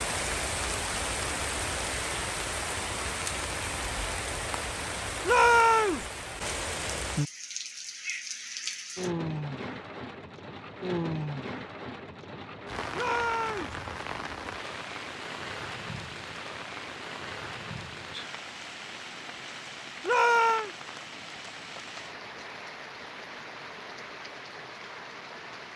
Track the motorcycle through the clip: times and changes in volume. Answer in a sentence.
You can't hear the motorcycle here.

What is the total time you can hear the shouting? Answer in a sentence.
The shouting can be heard for 2 seconds in total.